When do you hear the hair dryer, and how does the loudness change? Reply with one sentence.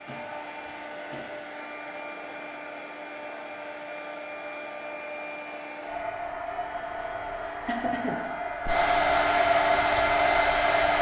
You can hear the hair dryer from 0.0 to 10.9 s, getting louder.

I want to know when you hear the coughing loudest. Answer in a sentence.
The loudest moment of the coughing is at 8 seconds.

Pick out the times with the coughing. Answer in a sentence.
You can hear the coughing from 0.1 to 1.4 s and from 7.2 to 8.2 s.